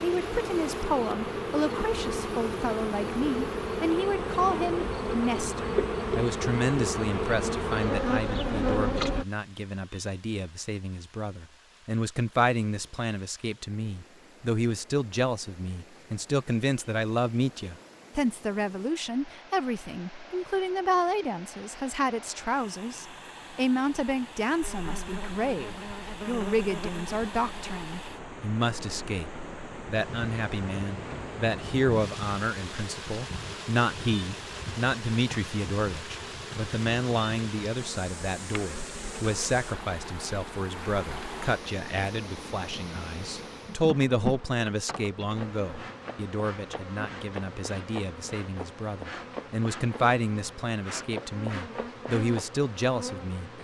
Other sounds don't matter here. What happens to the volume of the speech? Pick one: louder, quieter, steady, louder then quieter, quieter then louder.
steady.